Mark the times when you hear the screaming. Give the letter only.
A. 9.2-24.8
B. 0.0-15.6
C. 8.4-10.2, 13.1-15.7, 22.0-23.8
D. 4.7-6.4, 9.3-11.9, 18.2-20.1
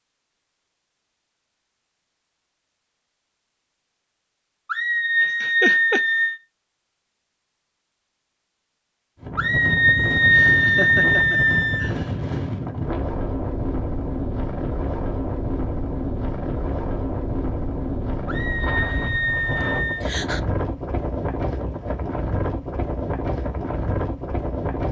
D.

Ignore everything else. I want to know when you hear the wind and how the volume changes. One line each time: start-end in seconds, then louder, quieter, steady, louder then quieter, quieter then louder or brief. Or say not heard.
9.2-24.8 steady.